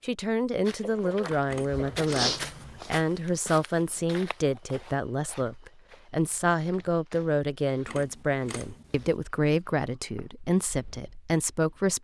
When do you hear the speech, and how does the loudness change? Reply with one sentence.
The speech can be heard from 0.0 to 11.9 s, at a steady volume.